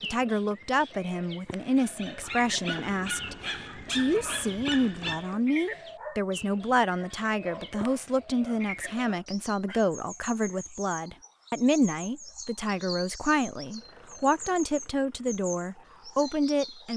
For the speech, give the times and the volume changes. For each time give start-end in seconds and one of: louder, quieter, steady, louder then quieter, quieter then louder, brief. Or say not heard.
0.0-16.9 steady.